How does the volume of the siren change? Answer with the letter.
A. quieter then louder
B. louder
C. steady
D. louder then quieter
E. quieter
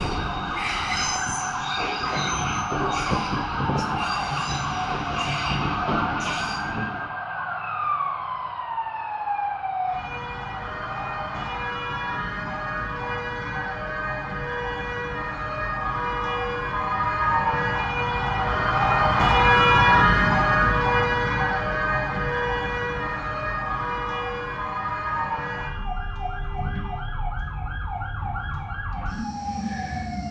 D.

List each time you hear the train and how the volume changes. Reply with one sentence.
You can hear the train from 0.0 to 7.1 s, at a steady volume.